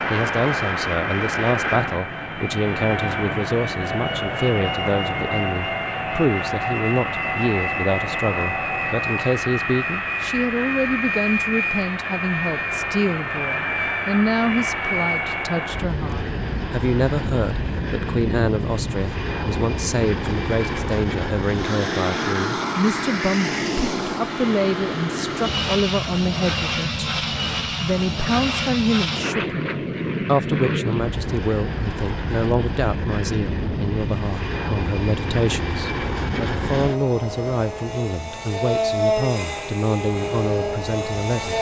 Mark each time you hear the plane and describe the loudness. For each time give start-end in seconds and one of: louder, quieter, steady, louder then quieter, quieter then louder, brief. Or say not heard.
0.0-41.5 steady.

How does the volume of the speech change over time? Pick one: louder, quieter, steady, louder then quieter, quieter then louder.
steady.